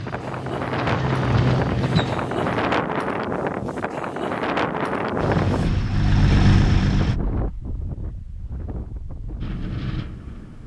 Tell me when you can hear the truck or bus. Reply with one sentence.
The truck or bus can be heard from 0.0 to 2.8 s and from 5.2 to 7.2 s.